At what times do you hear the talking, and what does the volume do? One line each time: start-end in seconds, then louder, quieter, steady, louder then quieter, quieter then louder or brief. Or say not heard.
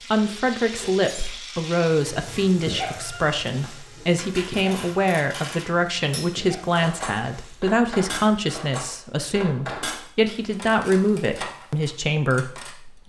0.1-13.0 steady.